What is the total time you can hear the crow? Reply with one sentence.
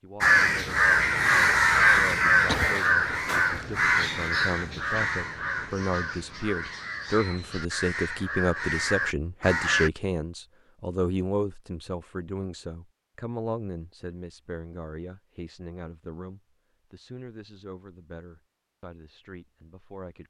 You can hear the crow for 10 seconds altogether.